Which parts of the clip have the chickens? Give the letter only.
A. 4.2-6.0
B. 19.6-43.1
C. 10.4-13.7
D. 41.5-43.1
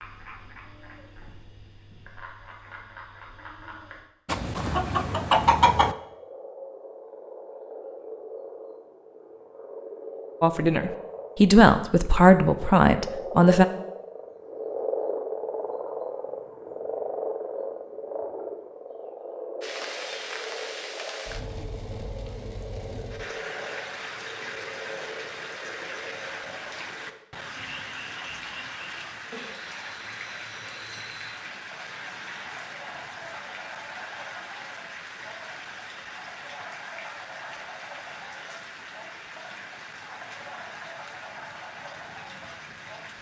A.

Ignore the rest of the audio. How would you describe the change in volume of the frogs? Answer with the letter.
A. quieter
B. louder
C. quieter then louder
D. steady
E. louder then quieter
E.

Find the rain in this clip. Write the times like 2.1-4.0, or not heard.
19.6-43.1.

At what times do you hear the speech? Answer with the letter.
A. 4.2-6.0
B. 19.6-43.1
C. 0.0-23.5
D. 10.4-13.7
D.